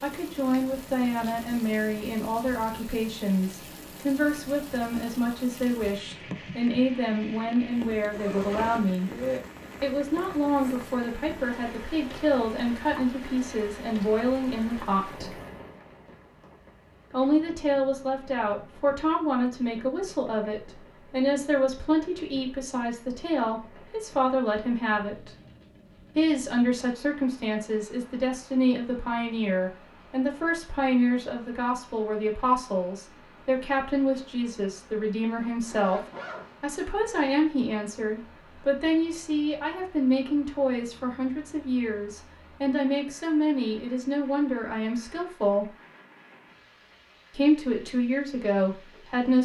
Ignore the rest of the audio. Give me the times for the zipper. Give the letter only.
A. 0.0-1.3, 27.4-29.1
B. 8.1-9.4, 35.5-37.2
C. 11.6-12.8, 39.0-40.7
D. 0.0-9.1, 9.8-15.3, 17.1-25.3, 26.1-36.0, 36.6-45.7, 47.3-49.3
B.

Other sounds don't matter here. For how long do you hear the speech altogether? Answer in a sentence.
You can hear the speech for 44 seconds altogether.